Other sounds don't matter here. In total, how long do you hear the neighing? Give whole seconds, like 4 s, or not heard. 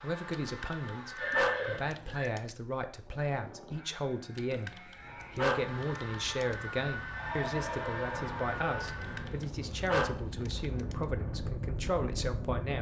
3 s.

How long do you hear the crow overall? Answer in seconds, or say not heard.
not heard.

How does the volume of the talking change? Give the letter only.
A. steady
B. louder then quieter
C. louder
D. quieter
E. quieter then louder
A.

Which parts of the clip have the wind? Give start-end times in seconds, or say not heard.
4.9-12.7.